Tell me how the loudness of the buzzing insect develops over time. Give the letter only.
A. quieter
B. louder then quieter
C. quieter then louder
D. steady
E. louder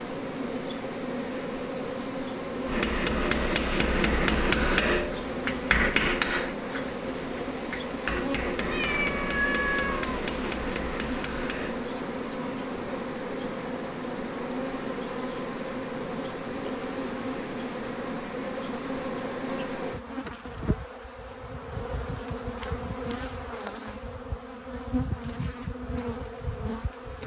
D.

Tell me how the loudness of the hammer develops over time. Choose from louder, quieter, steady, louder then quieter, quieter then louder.
quieter.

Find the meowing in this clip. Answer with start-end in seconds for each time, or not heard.
8.7-10.1.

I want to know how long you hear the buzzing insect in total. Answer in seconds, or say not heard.
27 s.